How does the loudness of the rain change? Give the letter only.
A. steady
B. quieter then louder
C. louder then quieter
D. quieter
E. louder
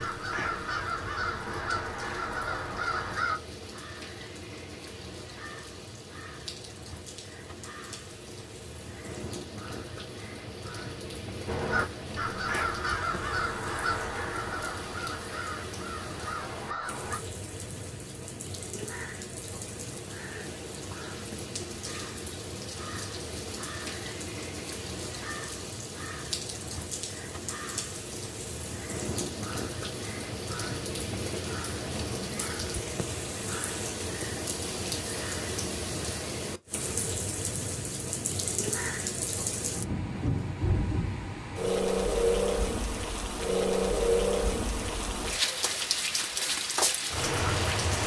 E.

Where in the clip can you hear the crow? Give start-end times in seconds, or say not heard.
0.0-3.4, 11.4-17.2.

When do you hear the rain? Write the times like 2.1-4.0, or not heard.
0.0-48.0.